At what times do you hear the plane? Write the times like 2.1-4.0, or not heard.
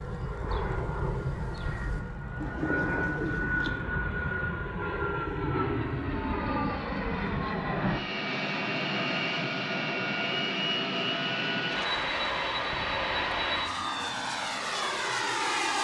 0.0-15.7.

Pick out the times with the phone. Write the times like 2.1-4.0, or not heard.
not heard.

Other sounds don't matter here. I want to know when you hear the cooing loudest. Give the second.
3 s.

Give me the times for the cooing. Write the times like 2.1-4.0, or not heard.
0.0-3.8.